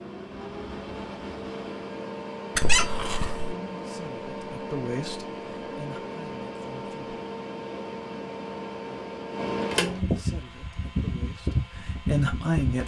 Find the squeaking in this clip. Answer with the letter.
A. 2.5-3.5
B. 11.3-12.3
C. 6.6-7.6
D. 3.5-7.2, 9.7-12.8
A.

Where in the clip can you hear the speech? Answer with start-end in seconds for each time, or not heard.
3.5-7.2, 9.7-12.8.